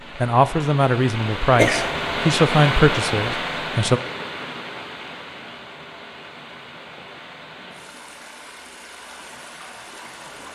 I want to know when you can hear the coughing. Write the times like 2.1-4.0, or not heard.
1.5-2.3.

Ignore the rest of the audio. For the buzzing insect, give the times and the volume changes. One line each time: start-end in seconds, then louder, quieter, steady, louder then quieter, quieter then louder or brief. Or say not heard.
not heard.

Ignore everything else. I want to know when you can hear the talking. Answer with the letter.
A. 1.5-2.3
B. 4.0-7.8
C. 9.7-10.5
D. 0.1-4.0
D.